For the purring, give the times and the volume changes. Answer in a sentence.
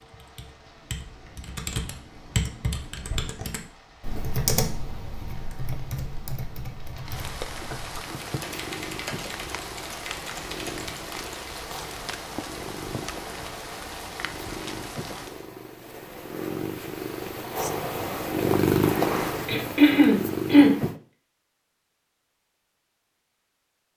You can hear the purring from 8.2 to 21.0 s, getting louder.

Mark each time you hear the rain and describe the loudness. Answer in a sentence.
The rain can be heard from 0.0 to 15.4 s, getting louder.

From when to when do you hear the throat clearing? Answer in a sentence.
You can hear the throat clearing from 19.4 to 20.8 s.